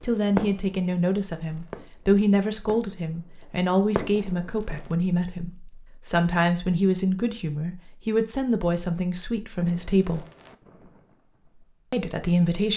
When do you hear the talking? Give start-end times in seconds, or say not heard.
0.0-10.2, 11.9-12.7.